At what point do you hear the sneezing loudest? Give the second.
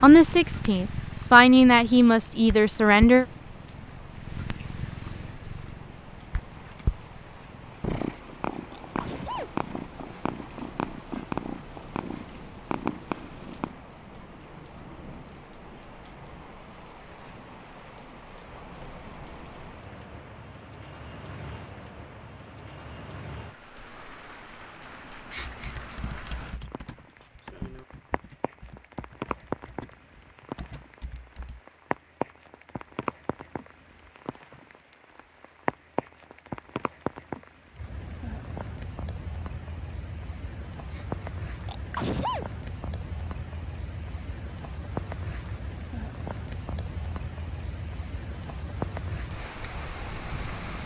42 s.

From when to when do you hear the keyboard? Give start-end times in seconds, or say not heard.
25.4-31.6.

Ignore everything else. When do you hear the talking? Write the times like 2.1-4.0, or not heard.
0.0-3.2.